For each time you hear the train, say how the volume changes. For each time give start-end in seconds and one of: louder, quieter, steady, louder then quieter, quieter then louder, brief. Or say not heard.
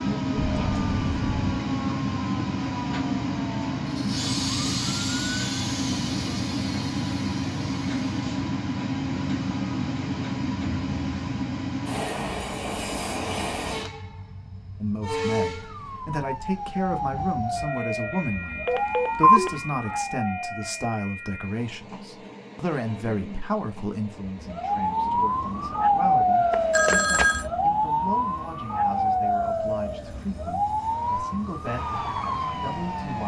0.0-33.2 quieter.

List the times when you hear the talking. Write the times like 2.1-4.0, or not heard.
14.8-33.2.